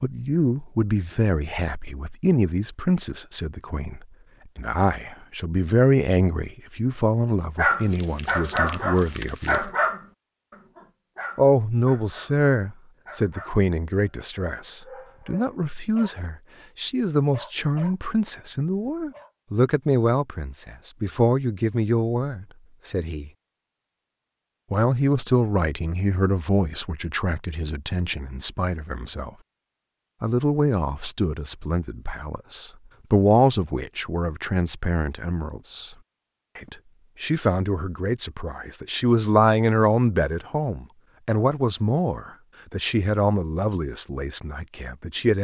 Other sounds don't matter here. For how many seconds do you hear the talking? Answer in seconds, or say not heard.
41 s.